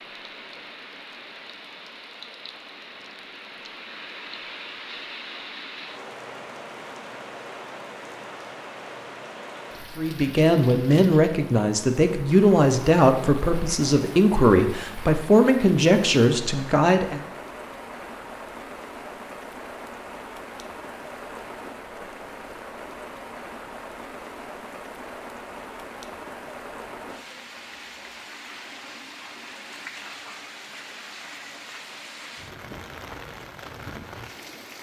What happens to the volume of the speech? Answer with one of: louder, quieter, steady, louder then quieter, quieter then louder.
steady.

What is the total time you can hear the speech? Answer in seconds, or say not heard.
7 s.